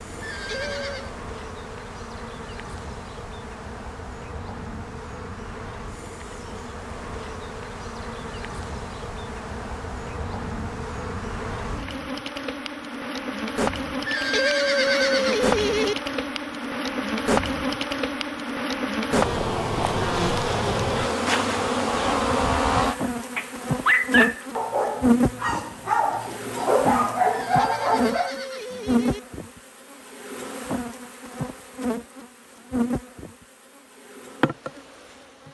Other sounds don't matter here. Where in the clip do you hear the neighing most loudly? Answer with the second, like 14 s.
15 s.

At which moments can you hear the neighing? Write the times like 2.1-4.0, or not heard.
0.2-1.1, 14.1-15.9, 27.3-29.2.